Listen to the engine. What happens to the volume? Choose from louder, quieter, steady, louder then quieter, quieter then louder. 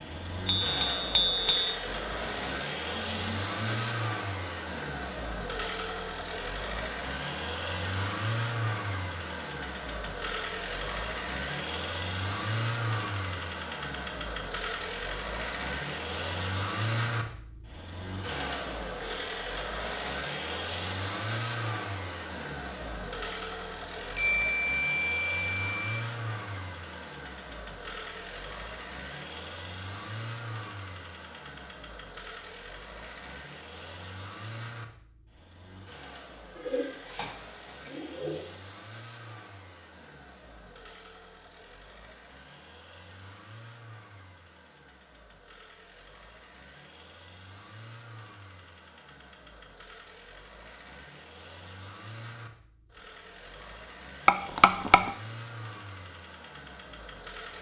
quieter.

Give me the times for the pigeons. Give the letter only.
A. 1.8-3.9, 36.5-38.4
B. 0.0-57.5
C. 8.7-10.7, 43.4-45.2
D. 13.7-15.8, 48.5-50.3
A.